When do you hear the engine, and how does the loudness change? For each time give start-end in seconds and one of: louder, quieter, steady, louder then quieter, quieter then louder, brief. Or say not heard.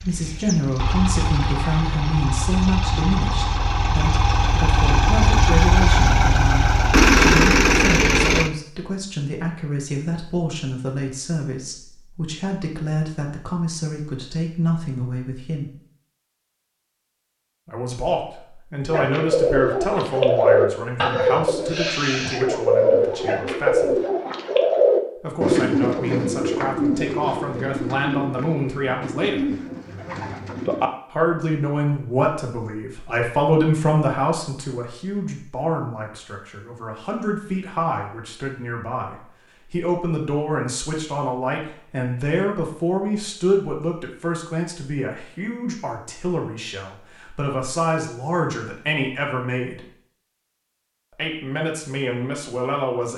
0.0-8.5 louder.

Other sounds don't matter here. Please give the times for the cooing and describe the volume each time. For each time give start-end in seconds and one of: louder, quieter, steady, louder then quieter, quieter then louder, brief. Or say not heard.
18.9-30.9 quieter.